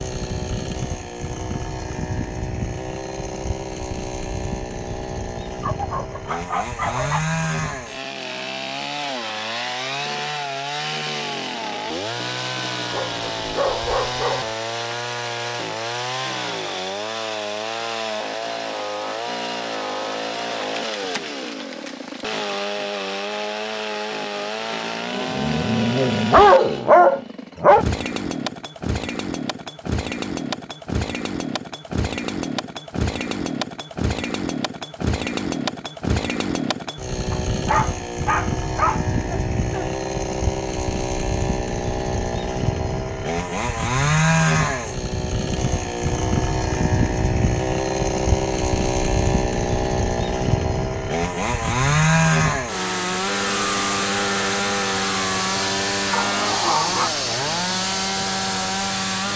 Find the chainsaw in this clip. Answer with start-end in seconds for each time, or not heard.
0.0-59.3.